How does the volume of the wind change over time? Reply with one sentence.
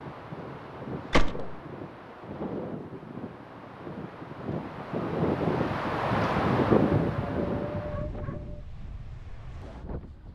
The loudness of the wind goes up, then down.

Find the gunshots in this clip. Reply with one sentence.
The gunshots can be heard from 1.1 to 1.6 s.